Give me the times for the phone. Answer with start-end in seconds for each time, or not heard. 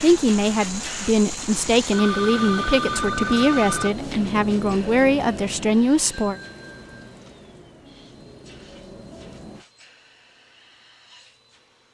1.6-4.0, 6.1-7.1.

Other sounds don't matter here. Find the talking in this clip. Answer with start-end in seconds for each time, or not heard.
0.0-6.3.